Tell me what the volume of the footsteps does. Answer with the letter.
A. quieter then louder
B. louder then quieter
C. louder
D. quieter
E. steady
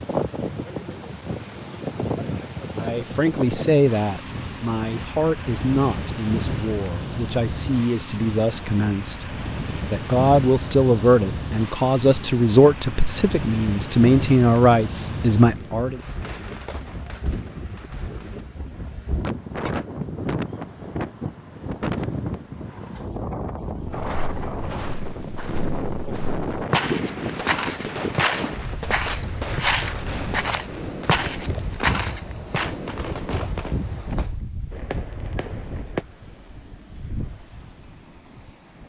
C.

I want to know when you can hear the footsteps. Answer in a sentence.
The footsteps can be heard from 23.9 to 32.8 s.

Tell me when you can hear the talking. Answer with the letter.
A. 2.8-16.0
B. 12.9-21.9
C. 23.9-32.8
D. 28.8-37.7
A.